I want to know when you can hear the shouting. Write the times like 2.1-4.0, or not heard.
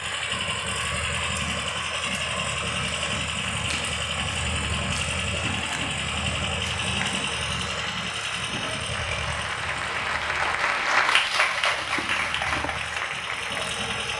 not heard.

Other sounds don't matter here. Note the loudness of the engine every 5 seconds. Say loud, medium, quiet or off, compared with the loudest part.
loud, loud, medium.